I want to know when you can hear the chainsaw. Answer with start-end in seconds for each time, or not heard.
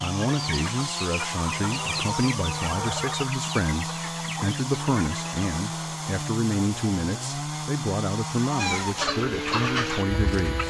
0.0-10.6.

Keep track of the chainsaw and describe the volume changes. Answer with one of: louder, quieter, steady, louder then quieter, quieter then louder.
steady.